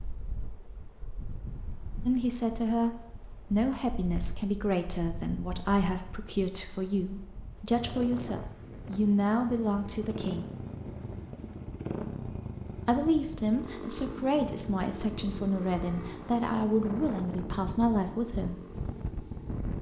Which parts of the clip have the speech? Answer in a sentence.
The speech can be heard from 2.0 to 2.9 s, from 3.5 to 10.4 s and from 12.8 to 18.6 s.